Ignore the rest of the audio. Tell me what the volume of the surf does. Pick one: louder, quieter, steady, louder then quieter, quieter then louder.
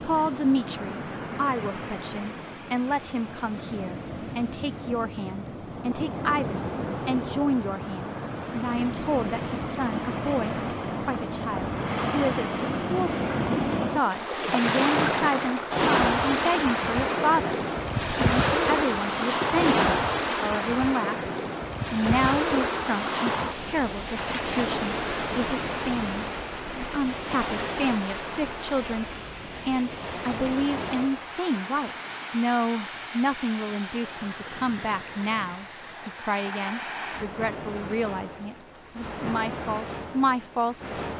louder then quieter.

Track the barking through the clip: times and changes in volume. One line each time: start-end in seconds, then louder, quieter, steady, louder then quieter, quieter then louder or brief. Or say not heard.
not heard.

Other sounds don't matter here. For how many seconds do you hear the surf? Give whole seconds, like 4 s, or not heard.
41 s.